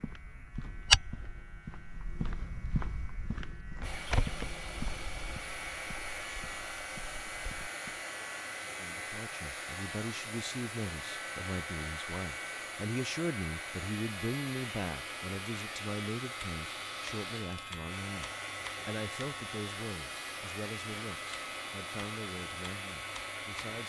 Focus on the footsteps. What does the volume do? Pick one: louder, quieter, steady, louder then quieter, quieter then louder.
quieter.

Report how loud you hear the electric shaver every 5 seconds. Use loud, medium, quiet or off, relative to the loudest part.
quiet, loud, loud, loud, loud.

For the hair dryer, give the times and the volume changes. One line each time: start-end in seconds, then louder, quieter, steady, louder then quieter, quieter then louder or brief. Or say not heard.
3.8-23.8 steady.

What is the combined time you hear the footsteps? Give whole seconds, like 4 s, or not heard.
8 s.